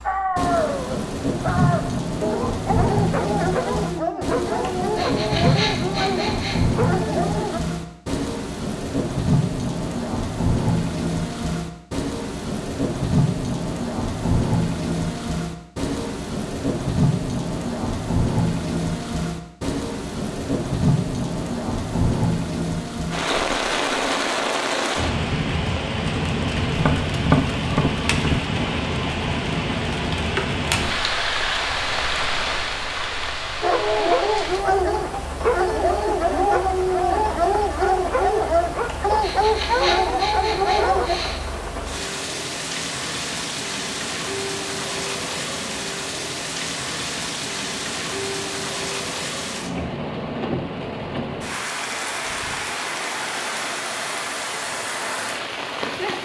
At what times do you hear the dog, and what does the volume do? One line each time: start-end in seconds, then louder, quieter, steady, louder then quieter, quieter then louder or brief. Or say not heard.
0.0-7.6 steady
33.6-41.2 steady.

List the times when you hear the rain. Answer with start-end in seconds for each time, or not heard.
0.0-56.2.